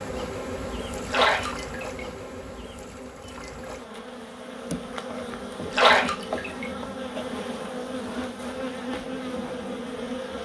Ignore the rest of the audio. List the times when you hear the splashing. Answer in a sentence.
You can hear the splashing from 1.1 to 2.0 s and from 5.7 to 6.7 s.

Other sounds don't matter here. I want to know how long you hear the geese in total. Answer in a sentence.
The geese can't be heard in this clip.